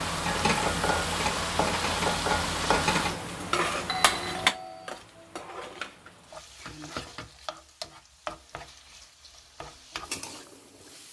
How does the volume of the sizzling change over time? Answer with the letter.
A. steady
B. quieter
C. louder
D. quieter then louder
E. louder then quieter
B.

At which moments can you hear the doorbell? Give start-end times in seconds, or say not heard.
3.9-5.0.